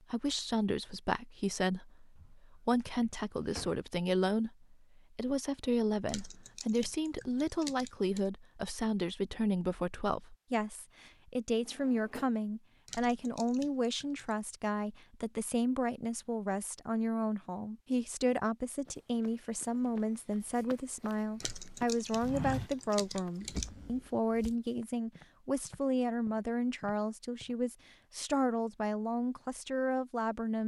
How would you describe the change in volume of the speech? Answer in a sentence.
The volume of the speech stays about the same.